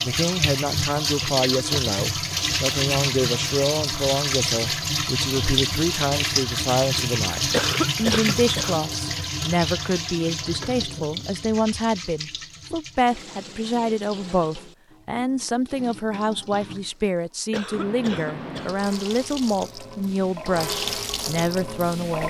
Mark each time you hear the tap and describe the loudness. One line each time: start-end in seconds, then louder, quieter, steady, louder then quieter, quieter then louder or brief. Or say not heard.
0.0-22.2 quieter then louder.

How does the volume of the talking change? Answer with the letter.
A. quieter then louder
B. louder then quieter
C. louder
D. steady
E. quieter
D.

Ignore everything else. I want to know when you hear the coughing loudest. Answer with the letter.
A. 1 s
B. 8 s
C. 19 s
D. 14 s
B.